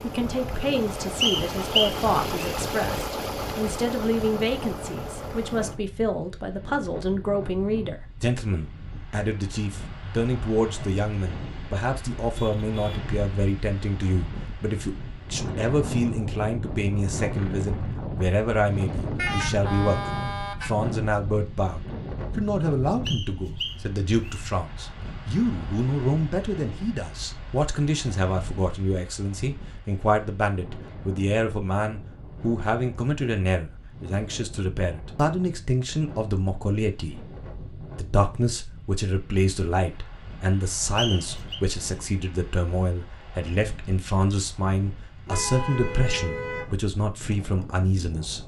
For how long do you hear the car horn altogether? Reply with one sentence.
You can hear the car horn for 4 seconds altogether.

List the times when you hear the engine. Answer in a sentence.
You can hear the engine from 0.0 to 5.8 s.